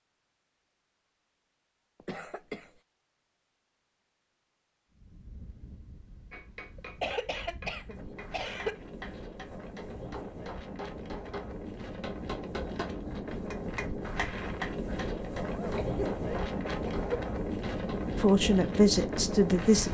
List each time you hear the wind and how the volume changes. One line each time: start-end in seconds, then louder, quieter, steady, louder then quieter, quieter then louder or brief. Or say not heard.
4.9-19.8 louder.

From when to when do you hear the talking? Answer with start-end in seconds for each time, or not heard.
18.1-19.8.